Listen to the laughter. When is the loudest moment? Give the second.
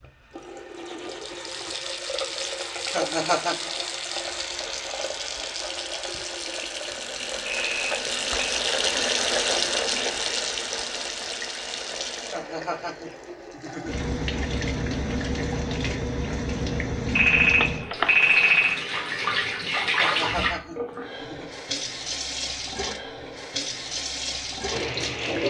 3 s.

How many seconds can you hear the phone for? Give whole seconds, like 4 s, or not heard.
3 s.